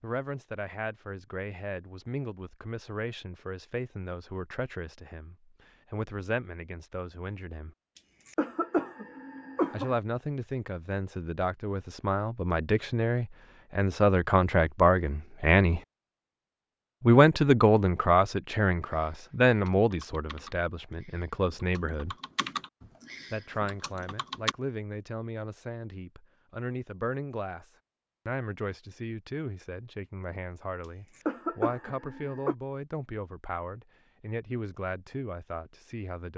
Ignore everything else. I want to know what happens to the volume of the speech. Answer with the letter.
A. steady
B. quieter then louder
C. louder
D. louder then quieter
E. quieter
D.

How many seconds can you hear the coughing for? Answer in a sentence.
The coughing can be heard for 4 seconds in total.